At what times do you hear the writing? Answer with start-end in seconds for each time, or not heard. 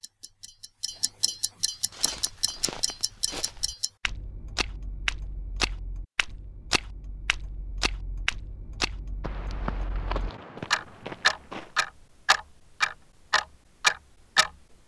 not heard.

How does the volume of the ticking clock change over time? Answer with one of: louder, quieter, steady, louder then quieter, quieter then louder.
quieter then louder.